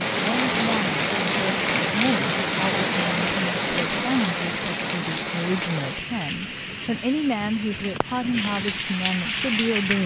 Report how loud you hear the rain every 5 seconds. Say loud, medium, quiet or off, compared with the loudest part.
loud, medium.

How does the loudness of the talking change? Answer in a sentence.
The loudness of the talking stays about the same.